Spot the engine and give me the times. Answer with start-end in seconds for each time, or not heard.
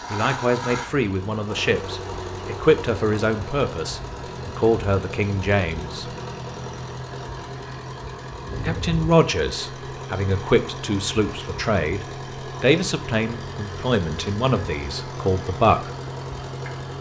0.0-16.9.